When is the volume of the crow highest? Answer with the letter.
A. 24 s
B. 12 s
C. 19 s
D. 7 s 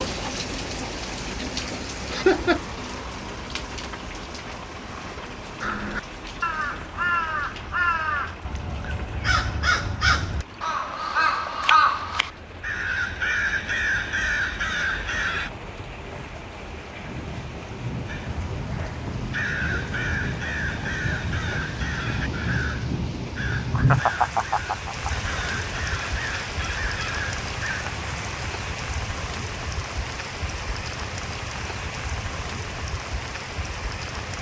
B.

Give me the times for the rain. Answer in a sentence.
You can hear the rain from 0.0 to 34.3 s.